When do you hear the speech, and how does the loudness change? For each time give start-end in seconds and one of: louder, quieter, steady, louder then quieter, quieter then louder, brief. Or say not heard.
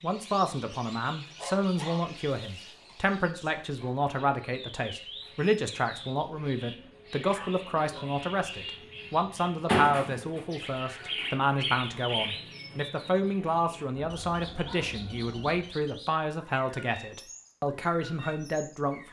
0.0-19.0 steady.